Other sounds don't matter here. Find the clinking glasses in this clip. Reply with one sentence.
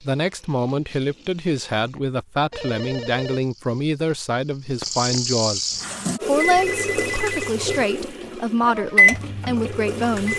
You can't hear the clinking glasses here.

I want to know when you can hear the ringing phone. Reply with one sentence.
The ringing phone can be heard from 2.5 to 3.5 s and from 6.5 to 7.5 s.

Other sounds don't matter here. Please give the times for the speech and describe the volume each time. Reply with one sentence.
The speech can be heard from 0.0 to 10.3 s, at a steady volume.